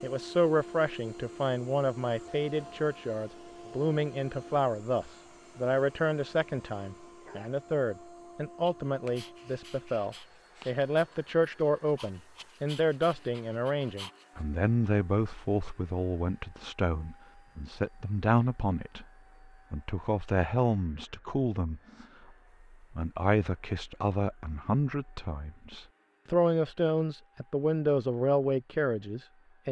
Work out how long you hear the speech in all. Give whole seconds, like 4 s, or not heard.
28 s.